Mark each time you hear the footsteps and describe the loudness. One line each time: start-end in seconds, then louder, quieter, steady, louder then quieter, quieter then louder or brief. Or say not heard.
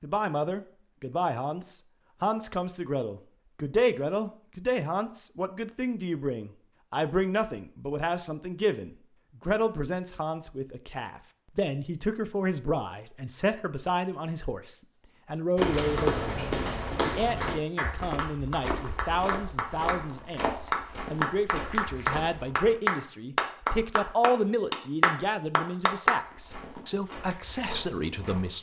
15.6-22.8 quieter
26.1-28.5 brief.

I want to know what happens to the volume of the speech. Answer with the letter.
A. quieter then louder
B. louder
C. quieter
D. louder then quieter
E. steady
E.